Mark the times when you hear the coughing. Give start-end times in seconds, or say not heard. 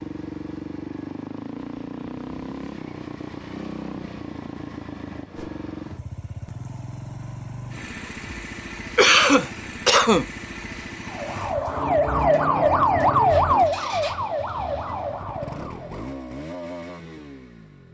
8.9-10.2.